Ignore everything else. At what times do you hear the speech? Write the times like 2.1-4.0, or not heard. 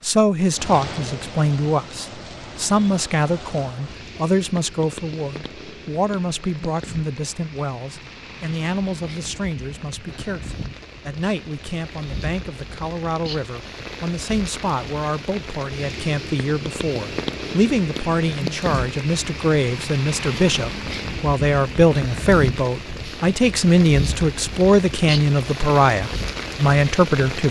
0.0-27.4.